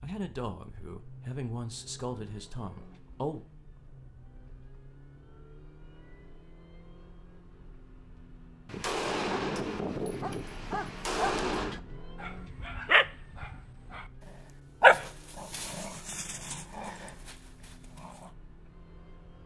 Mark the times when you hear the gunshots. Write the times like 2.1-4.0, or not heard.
8.7-11.8.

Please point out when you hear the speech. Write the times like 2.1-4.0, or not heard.
0.0-3.4.